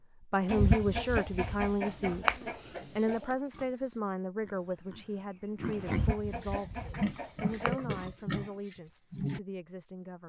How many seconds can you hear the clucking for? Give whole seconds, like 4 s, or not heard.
5 s.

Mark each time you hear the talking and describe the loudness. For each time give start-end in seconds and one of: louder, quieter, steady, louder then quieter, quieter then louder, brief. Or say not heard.
0.2-10.2 quieter.